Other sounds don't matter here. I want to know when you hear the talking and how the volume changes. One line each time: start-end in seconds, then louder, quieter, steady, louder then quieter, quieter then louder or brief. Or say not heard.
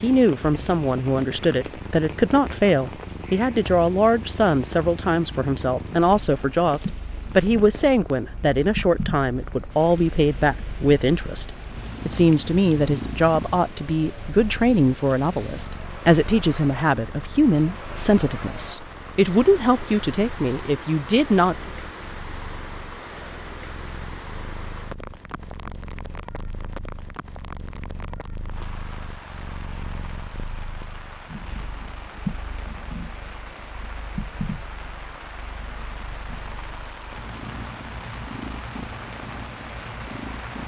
0.0-11.4 steady
12.1-21.7 steady.